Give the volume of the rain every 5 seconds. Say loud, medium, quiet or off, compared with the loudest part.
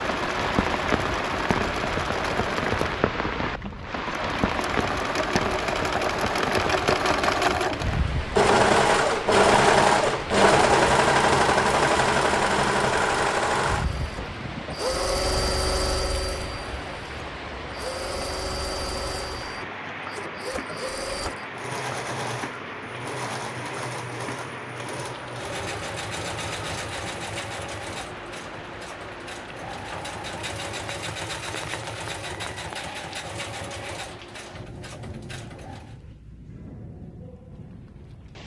loud, loud, medium, medium, medium, medium, quiet, quiet.